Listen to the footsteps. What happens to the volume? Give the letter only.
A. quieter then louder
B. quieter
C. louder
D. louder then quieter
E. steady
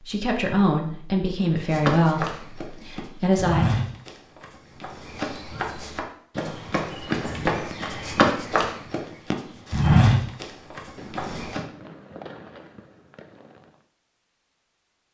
A.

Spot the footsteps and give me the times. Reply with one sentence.
You can hear the footsteps from 1.6 to 11.6 s.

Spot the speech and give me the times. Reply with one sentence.
The speech can be heard from 0.0 to 3.6 s.